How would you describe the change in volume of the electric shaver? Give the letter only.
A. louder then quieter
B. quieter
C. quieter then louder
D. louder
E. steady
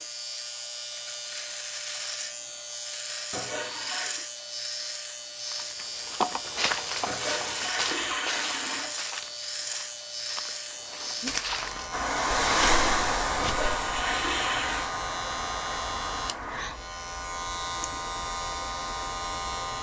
E.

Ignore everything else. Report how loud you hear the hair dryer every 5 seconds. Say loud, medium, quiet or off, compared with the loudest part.
off, off, loud, medium.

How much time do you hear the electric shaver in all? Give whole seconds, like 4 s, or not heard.
20 s.